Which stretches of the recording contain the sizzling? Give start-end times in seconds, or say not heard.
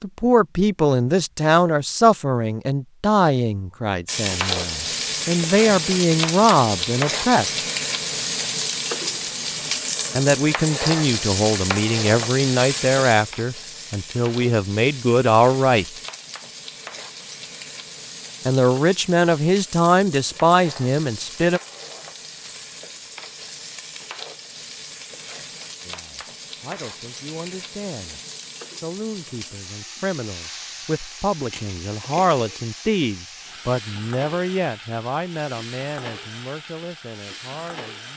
4.0-38.1.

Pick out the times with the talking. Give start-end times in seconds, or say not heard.
0.0-7.6, 10.2-16.0, 18.4-21.6, 25.9-28.2, 28.8-38.1.